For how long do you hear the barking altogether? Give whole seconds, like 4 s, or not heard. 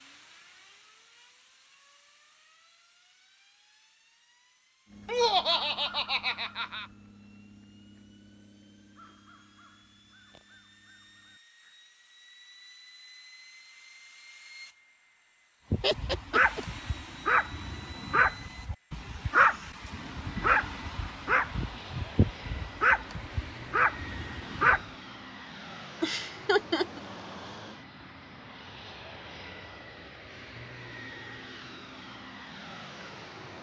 9 s.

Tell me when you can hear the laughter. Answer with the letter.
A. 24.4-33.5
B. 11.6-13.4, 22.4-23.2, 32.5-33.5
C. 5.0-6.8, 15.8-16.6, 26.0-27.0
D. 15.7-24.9
C.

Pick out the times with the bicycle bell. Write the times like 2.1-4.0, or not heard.
not heard.